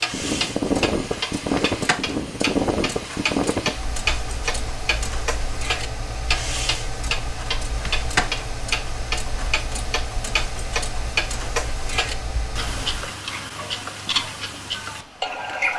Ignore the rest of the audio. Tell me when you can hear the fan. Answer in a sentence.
The fan can be heard from 0.0 to 13.1 s.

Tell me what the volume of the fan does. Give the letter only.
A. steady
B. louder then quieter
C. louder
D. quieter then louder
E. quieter
E.